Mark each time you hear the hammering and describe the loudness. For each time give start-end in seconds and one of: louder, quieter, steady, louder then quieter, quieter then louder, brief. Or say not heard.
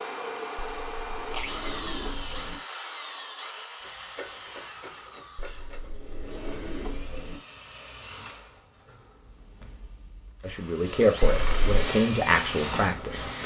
not heard.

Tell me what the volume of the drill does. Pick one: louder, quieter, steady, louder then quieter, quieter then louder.
quieter then louder.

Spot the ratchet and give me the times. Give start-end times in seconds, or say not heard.
3.8-6.0.